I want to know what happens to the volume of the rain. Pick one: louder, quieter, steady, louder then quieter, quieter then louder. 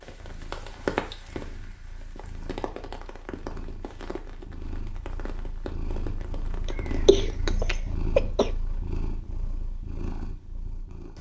quieter.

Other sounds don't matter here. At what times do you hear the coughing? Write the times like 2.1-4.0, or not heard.
6.7-8.5.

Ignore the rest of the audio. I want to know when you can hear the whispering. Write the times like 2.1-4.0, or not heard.
not heard.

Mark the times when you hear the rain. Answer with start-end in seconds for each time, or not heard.
0.0-7.5.